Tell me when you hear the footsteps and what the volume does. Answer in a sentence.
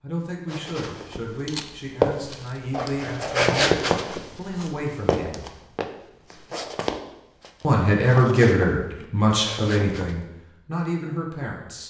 The footsteps can be heard from 0.5 to 10.2 s, getting quieter.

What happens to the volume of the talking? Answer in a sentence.
The loudness of the talking goes up, then down.